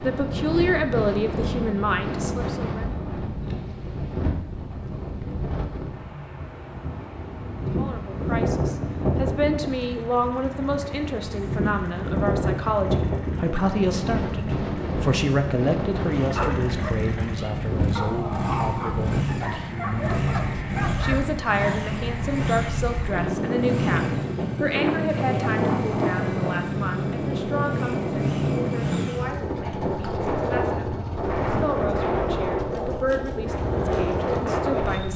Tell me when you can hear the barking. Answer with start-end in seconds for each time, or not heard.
16.1-21.8.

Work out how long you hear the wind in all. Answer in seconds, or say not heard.
35 s.